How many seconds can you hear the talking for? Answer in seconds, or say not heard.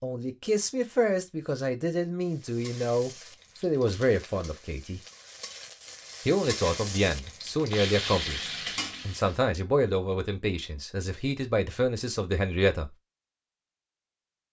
12 s.